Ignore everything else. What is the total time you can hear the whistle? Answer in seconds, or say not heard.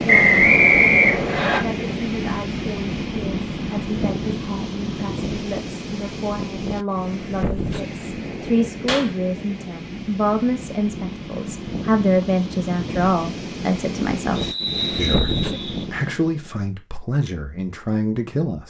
3 s.